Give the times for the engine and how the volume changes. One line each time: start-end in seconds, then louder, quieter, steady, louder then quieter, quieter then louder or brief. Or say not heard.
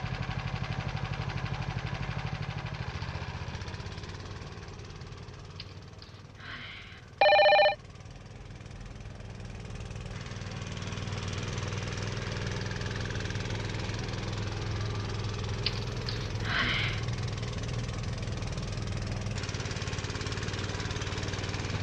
0.0-21.7 quieter then louder.